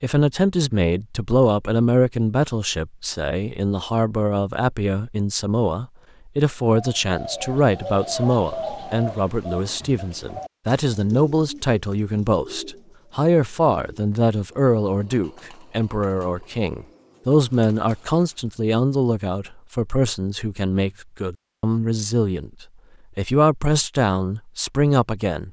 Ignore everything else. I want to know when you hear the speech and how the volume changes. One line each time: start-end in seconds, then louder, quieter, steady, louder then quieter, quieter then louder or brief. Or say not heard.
0.0-25.4 steady.